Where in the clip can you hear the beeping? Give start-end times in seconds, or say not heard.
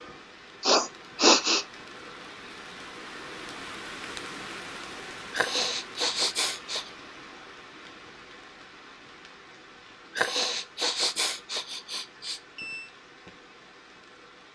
12.2-12.9.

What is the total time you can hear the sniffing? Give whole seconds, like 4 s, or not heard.
5 s.